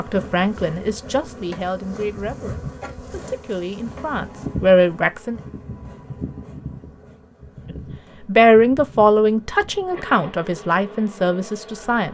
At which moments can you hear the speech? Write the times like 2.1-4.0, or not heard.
0.0-5.4, 8.2-12.0.